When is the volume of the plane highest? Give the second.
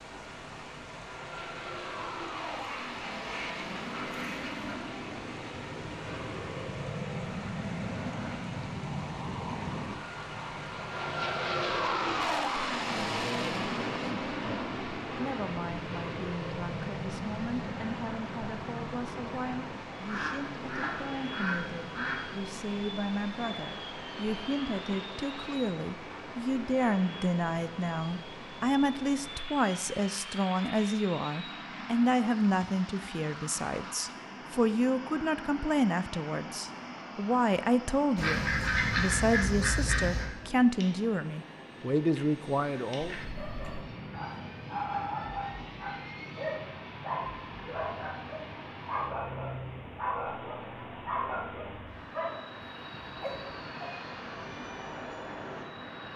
12 s.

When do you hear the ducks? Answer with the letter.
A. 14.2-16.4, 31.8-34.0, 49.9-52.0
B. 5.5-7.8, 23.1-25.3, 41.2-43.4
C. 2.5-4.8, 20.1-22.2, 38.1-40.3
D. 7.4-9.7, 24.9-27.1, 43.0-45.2
C.